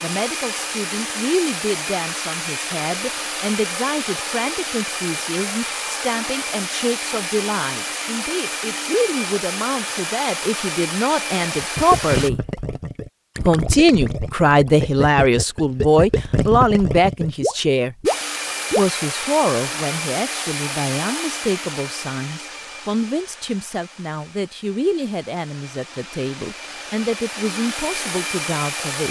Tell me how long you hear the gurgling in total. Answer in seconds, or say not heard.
7 s.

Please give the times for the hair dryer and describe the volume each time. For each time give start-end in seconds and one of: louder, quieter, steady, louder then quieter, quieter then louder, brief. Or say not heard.
0.0-12.3 steady
18.1-29.0 quieter then louder.